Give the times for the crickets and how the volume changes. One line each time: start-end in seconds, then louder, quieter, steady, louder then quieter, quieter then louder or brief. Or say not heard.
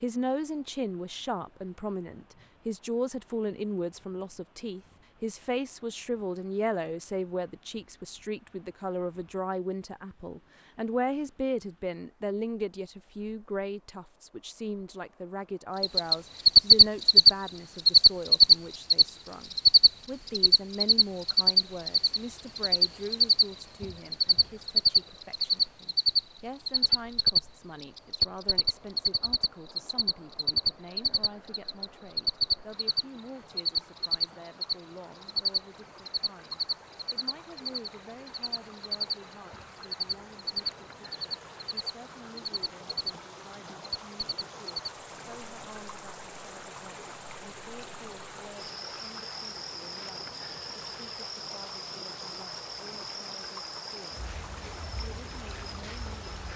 15.8-56.5 quieter.